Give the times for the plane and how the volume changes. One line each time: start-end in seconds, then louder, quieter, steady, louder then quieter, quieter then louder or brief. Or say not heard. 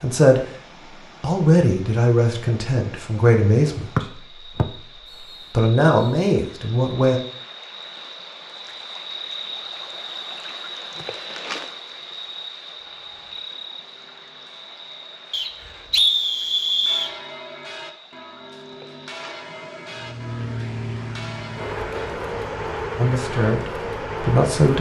19.9-24.7 steady.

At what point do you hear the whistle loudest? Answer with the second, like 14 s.
16 s.